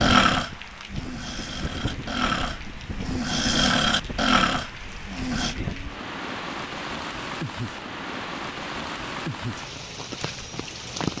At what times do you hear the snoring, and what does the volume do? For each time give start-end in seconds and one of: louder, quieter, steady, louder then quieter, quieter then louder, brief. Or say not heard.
0.0-5.5 louder.